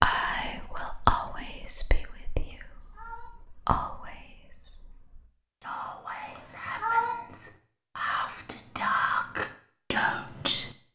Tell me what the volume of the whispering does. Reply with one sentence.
The loudness of the whispering goes down, then up.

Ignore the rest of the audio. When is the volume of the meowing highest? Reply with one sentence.
The loudest moment of the meowing is at 7 seconds.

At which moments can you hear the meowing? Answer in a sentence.
The meowing can be heard from 2.5 to 3.3 s and from 6.3 to 7.2 s.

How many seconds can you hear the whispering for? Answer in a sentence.
The whispering can be heard for 11 seconds in total.